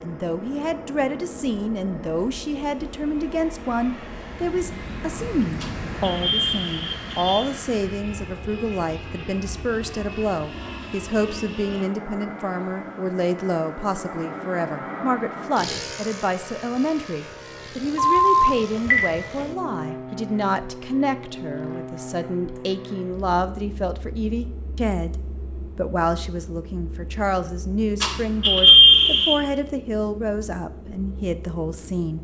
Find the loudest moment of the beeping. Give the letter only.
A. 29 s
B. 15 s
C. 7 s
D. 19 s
A.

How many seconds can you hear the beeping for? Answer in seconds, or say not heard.
5 s.